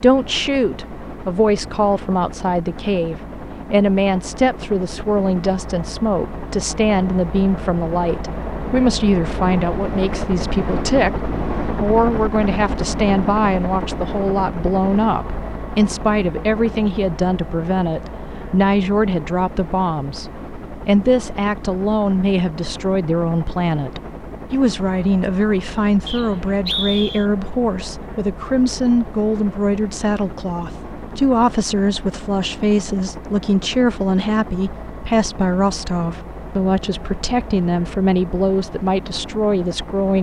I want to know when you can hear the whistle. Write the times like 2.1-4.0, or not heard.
26.1-27.2.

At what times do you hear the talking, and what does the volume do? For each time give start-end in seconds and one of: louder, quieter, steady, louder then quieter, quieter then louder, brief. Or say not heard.
0.0-40.1 steady.